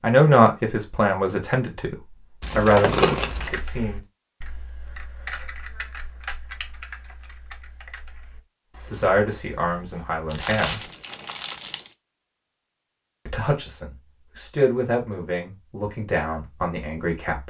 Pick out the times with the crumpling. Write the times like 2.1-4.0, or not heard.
2.4-3.6, 10.3-11.9.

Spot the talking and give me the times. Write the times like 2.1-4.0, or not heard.
0.0-1.9, 2.5-4.0, 8.8-10.8, 13.2-17.4.